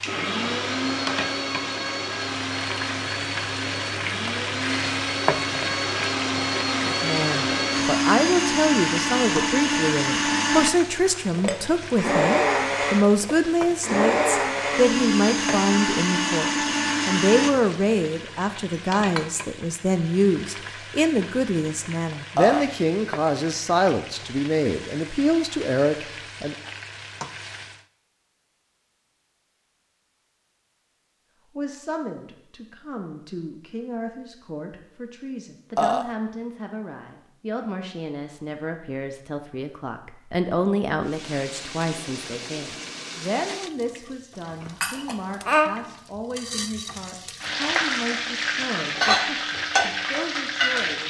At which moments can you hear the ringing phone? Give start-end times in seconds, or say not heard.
not heard.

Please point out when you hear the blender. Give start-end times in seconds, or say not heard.
0.0-17.5.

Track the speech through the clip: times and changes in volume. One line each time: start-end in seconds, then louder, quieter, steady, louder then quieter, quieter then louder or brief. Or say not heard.
7.0-26.7 steady
31.6-51.0 louder then quieter.